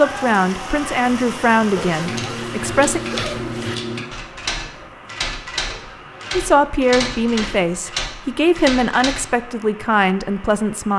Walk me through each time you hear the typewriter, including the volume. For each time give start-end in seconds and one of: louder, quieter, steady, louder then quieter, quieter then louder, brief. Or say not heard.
2.0-9.4 steady.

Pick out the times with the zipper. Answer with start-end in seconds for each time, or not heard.
1.8-3.8, 5.7-6.3.